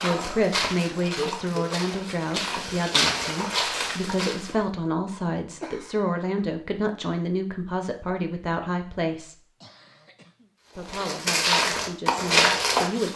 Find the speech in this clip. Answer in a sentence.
You can hear the speech from 0.0 to 9.4 s and from 10.8 to 13.1 s.